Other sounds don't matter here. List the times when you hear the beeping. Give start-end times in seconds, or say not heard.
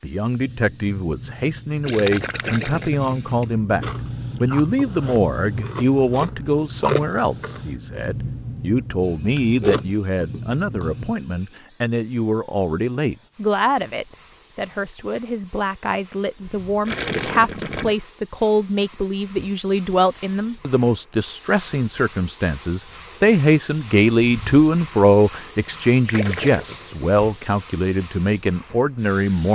not heard.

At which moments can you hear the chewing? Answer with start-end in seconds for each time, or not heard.
0.3-11.2.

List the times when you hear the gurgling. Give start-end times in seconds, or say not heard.
1.9-3.5, 16.9-17.9, 26.1-27.1.